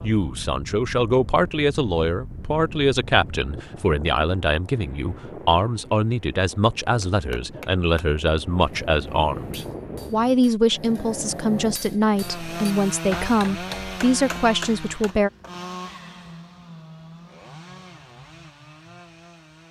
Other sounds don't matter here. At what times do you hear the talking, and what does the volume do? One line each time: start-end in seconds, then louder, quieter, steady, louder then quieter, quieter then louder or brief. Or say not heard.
0.0-15.3 steady.